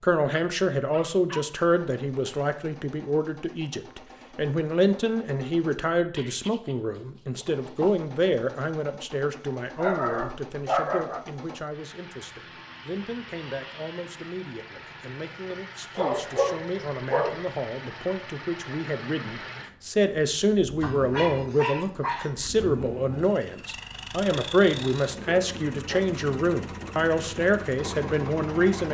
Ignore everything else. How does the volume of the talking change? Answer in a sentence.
The volume of the talking goes down, then up.